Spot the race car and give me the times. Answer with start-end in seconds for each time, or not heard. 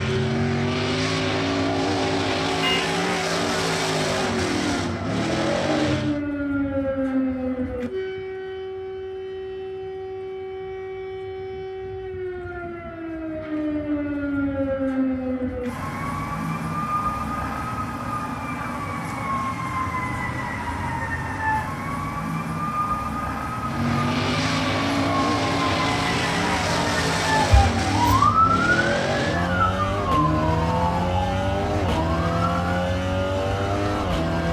0.0-6.2, 23.6-34.4.